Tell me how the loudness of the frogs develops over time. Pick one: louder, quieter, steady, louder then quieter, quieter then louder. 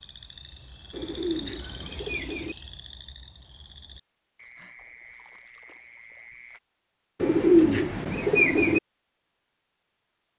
quieter.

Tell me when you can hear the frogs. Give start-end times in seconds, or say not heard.
0.0-6.6.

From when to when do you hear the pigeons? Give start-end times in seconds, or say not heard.
0.9-2.5, 7.2-8.8.